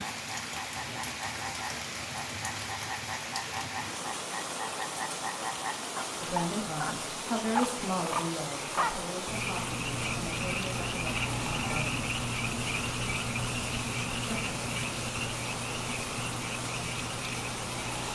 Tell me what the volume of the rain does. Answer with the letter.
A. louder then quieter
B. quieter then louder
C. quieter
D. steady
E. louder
D.